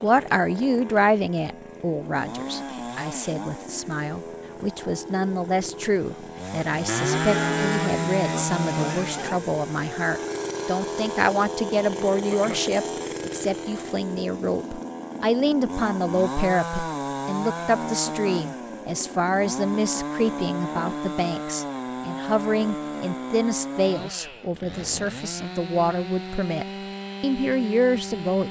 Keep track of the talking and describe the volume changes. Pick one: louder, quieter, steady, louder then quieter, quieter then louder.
steady.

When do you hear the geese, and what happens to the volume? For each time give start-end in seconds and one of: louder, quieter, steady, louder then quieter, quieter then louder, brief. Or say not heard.
not heard.